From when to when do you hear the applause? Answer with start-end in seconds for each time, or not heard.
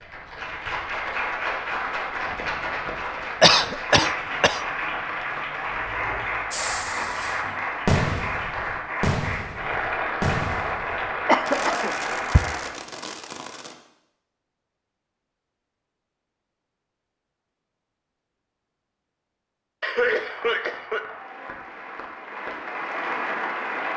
0.0-12.8, 20.1-23.9.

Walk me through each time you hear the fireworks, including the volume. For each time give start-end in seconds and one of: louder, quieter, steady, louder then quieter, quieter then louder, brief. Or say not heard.
6.5-13.8 quieter.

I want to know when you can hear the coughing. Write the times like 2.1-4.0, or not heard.
3.4-4.6, 11.2-12.4, 19.8-21.1.